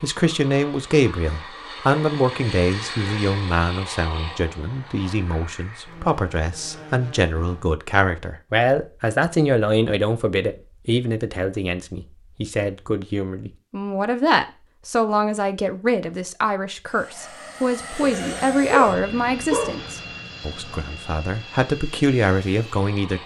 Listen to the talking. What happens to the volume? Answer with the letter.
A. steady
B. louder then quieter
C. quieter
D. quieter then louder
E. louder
A.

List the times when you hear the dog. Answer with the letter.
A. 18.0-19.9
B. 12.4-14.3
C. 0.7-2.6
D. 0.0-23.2
A.